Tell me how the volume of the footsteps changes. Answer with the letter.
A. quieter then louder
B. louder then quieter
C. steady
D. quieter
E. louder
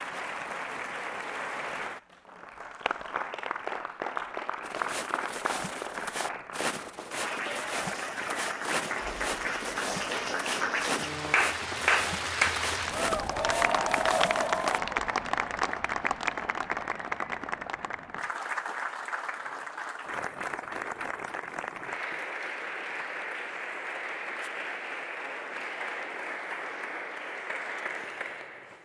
C.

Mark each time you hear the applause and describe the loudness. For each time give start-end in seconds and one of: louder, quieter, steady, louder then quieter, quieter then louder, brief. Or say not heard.
0.0-28.7 louder then quieter.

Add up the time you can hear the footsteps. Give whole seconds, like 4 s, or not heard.
10 s.